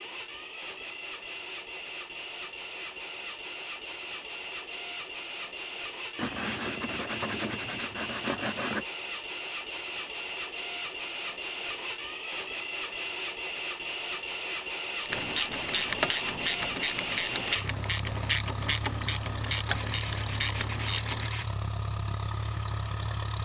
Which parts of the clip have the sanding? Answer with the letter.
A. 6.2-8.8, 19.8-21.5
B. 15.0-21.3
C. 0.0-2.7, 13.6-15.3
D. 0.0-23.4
A.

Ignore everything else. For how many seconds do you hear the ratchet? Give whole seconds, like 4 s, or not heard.
6 s.